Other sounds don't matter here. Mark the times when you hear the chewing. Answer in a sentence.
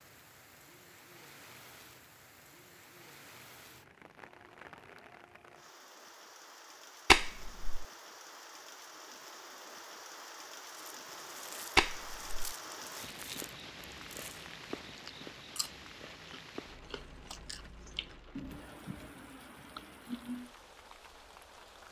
You can hear the chewing from 10.7 to 20.5 s.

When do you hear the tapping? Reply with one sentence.
You can hear the tapping from 7.1 to 7.8 s and from 11.8 to 12.6 s.